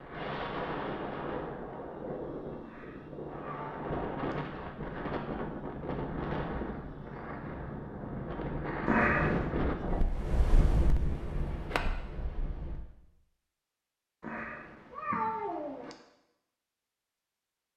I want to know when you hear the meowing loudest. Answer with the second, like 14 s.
9 s.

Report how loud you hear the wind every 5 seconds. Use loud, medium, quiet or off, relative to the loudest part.
loud, loud, loud, off.